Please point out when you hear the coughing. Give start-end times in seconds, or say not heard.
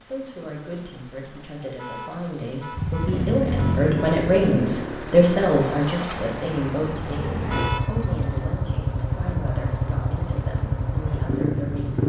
not heard.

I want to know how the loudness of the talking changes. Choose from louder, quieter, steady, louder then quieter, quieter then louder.
louder then quieter.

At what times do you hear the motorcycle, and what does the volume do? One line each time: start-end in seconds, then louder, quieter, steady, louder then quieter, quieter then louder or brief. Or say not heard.
2.7-12.0 quieter then louder.